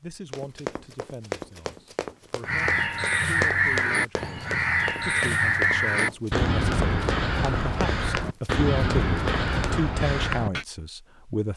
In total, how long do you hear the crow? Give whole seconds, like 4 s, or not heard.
8 s.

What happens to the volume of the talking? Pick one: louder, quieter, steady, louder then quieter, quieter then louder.
louder.